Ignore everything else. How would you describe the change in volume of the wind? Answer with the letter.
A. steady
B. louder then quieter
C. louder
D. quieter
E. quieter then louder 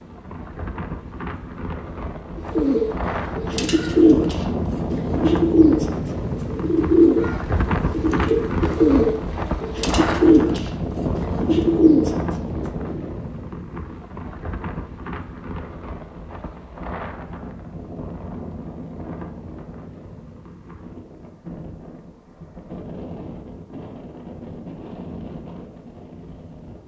D.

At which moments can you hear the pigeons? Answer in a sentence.
The pigeons can be heard from 2.4 to 13.1 s.